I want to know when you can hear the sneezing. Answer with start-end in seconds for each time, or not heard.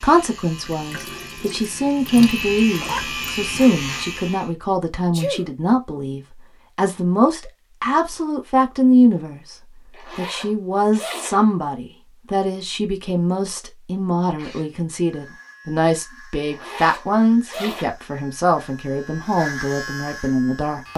5.1-5.5, 14.3-15.6.